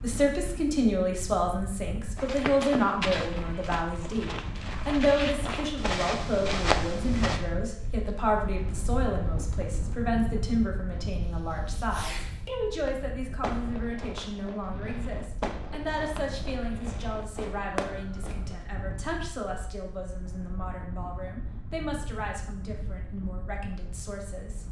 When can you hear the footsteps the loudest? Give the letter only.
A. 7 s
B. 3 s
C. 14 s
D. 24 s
A.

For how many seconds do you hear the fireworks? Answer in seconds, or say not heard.
8 s.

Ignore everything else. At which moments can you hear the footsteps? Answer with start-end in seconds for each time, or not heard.
2.1-7.4.